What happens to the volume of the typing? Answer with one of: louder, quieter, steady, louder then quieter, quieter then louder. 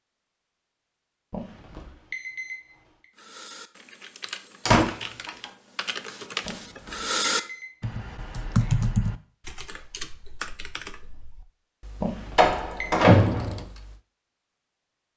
louder then quieter.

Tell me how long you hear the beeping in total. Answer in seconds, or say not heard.
4 s.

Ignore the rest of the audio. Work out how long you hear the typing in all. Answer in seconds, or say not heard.
11 s.